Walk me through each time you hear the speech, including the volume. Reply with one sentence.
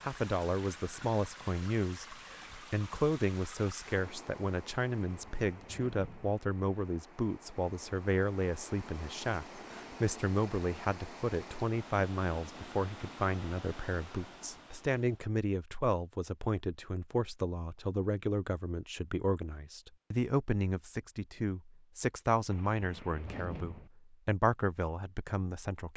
You can hear the speech from 0.0 to 25.9 s, at a steady volume.